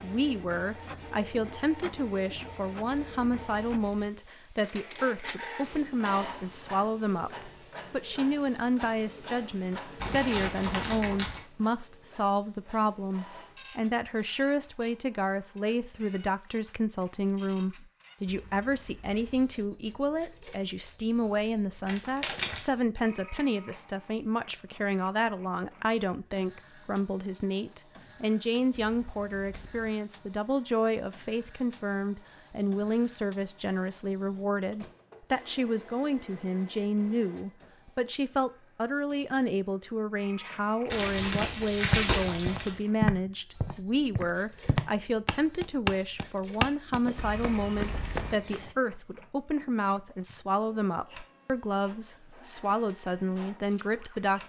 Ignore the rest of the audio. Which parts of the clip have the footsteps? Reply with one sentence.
You can hear the footsteps from 41.4 to 48.8 s.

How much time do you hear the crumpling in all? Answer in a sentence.
The crumpling can be heard for 4 seconds in total.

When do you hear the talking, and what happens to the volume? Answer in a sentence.
You can hear the talking from 0.0 to 54.4 s, at a steady volume.